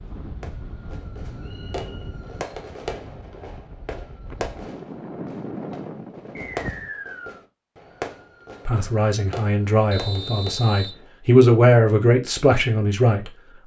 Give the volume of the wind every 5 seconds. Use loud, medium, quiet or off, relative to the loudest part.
medium, loud, off.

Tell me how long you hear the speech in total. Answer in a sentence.
You can hear the speech for 5 seconds altogether.